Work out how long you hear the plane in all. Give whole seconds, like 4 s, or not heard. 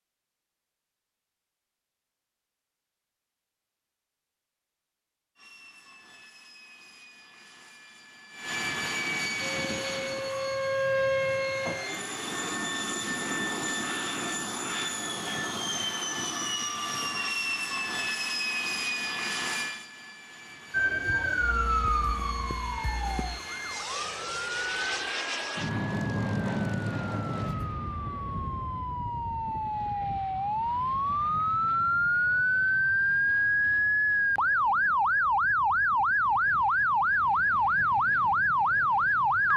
34 s.